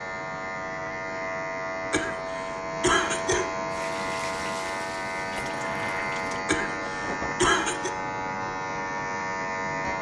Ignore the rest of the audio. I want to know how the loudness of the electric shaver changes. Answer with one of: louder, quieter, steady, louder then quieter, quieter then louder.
steady.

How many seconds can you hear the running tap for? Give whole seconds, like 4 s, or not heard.
3 s.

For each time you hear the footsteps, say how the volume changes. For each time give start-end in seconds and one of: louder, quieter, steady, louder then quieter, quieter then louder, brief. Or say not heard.
not heard.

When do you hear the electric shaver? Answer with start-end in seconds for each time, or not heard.
0.0-9.9.